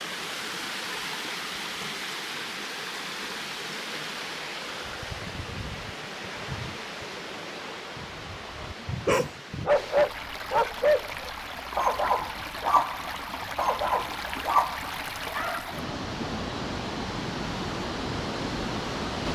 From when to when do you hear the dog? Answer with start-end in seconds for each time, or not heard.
8.6-15.7.